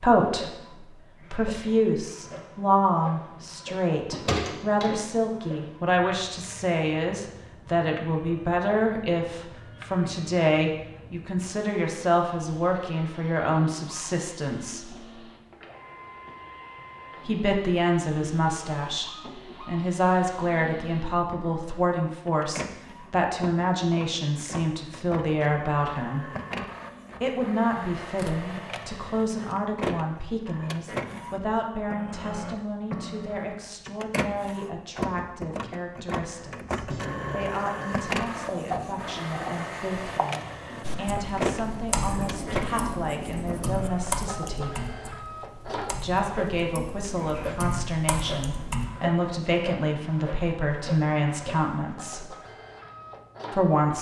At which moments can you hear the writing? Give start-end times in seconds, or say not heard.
36.9-44.2.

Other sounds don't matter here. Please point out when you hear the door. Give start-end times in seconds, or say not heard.
4.0-5.0.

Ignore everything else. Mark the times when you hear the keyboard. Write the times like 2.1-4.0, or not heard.
40.8-48.9.